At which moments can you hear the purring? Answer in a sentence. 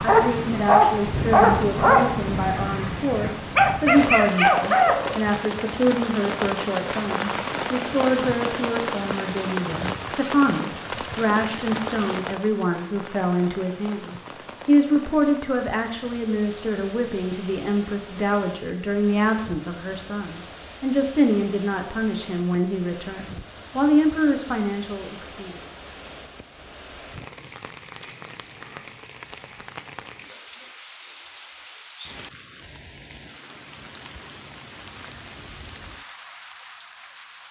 You can't hear the purring here.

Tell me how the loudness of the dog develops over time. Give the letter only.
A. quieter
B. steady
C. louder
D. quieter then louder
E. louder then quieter
D.